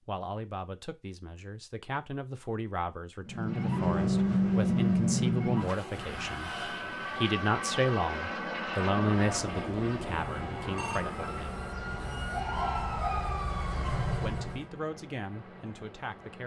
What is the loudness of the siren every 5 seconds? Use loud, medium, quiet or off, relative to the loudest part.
loud, medium, medium, off.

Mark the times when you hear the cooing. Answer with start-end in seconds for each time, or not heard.
not heard.